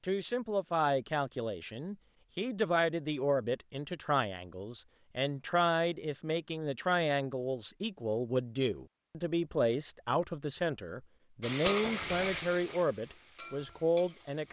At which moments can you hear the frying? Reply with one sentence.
You can hear the frying from 11.4 to 14.4 s.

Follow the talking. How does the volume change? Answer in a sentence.
The volume of the talking stays about the same.